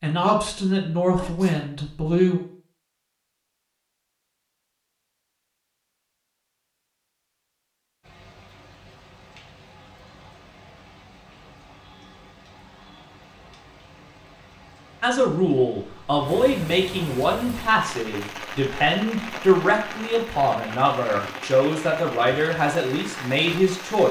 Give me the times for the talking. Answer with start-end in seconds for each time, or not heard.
0.0-2.4, 15.0-24.0.